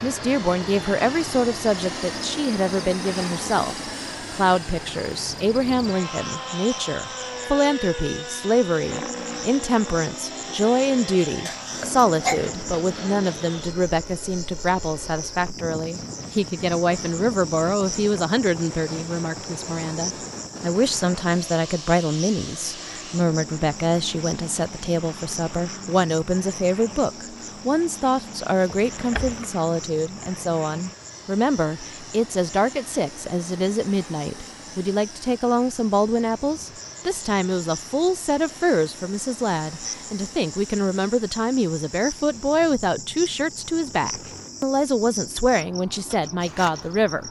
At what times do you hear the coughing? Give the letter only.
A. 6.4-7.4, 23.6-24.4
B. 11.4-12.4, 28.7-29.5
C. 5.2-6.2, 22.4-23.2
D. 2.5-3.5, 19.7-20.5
B.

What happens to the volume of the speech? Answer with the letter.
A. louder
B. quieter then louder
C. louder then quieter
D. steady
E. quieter
D.